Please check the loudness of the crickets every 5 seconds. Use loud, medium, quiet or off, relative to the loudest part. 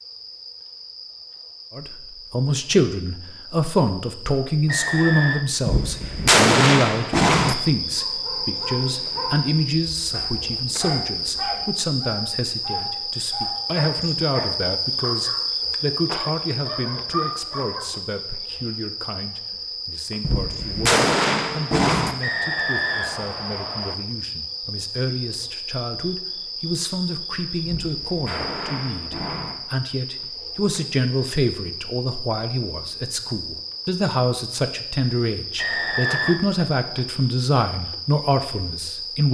quiet, loud, loud, loud, medium, medium, medium, medium.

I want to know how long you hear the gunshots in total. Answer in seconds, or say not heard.
6 s.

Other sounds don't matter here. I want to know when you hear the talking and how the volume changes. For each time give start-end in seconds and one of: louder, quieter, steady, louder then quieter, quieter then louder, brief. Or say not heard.
1.7-39.3 quieter then louder.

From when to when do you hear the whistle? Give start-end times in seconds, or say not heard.
4.7-5.5, 22.2-23.9, 35.5-36.4.